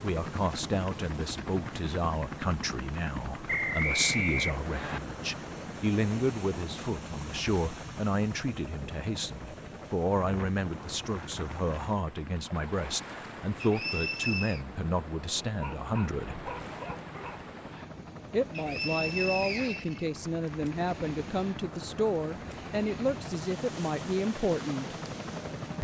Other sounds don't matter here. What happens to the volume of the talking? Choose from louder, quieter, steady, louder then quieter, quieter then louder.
steady.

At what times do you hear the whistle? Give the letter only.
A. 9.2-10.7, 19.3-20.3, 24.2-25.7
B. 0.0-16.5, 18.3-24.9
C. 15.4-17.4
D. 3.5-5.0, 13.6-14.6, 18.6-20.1
D.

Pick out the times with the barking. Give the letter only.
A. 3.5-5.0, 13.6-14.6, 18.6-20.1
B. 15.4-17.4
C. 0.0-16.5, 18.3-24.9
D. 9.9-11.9
B.